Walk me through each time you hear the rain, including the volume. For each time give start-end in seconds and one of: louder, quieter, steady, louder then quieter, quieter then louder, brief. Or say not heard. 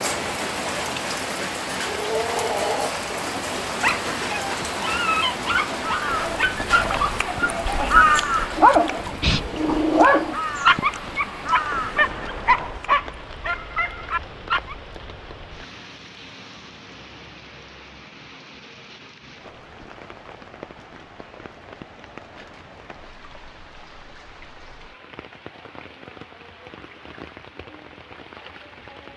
0.0-29.1 quieter.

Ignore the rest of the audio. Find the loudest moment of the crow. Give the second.
8 s.